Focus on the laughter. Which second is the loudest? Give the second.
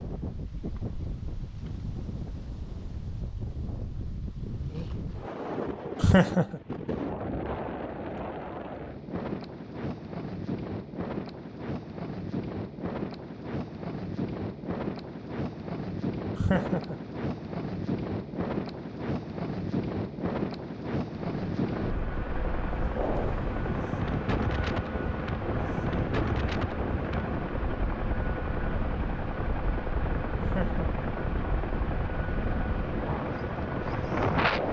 6 s.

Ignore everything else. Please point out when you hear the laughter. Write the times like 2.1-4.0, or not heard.
6.0-6.6, 16.4-16.9, 30.4-30.9.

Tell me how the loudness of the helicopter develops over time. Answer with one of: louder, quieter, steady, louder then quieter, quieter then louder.
steady.